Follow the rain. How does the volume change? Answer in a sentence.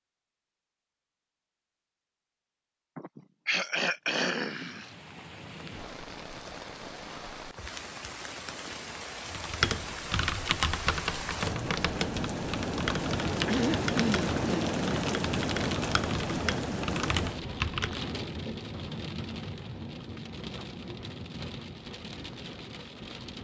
The loudness of the rain goes up, then down.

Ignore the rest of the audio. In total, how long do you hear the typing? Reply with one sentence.
You can hear the typing for 9 seconds altogether.